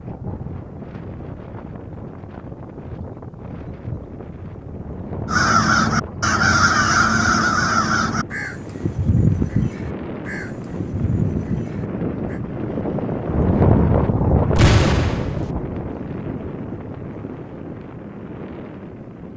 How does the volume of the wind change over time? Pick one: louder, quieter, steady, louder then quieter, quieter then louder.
louder then quieter.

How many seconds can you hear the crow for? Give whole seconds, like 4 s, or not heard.
7 s.